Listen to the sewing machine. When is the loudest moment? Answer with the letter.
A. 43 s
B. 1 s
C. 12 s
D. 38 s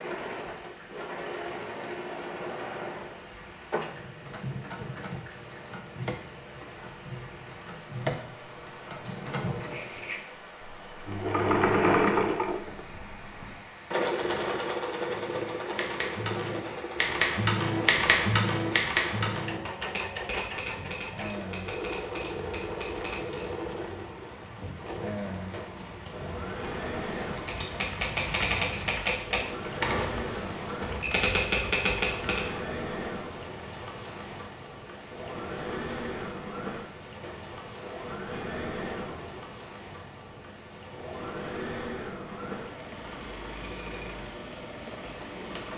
C.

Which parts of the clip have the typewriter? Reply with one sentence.
You can hear the typewriter from 15.1 to 23.5 s and from 27.4 to 32.5 s.